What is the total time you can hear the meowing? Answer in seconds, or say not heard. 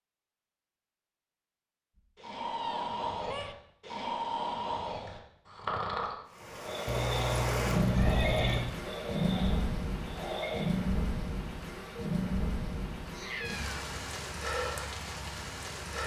4 s.